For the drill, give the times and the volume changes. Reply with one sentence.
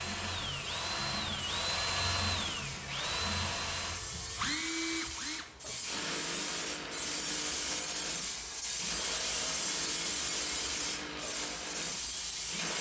You can hear the drill from 0.0 to 12.7 s, getting quieter.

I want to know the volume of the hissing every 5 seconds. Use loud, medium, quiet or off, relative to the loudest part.
medium, loud, loud.